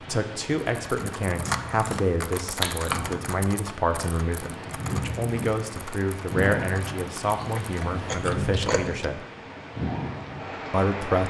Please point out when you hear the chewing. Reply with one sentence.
You can hear the chewing from 1.5 to 3.2 s and from 7.3 to 8.9 s.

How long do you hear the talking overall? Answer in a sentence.
The talking can be heard for 10 seconds in total.